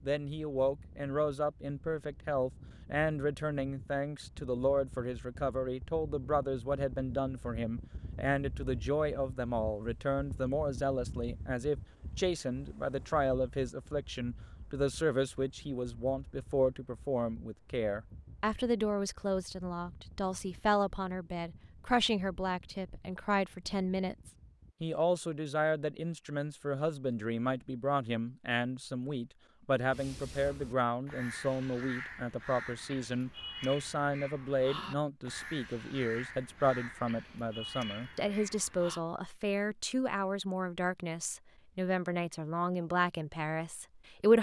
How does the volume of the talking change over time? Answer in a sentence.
The volume of the talking stays about the same.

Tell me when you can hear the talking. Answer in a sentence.
You can hear the talking from 0.0 to 44.3 s.